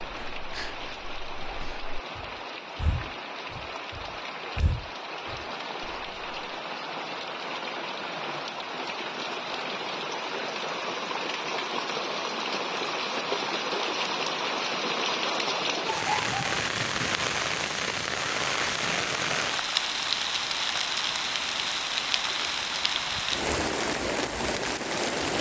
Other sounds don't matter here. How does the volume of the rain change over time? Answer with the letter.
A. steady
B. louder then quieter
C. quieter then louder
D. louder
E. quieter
D.